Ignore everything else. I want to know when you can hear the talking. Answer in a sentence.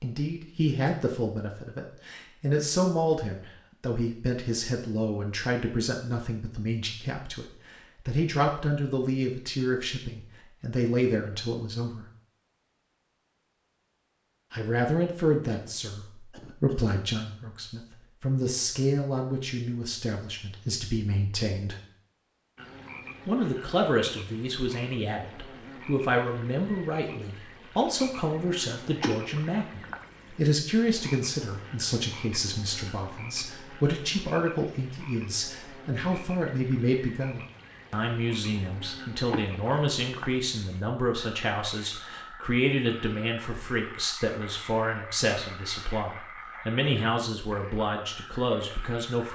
You can hear the talking from 0.0 to 12.1 s, from 14.5 to 21.8 s and from 23.2 to 49.2 s.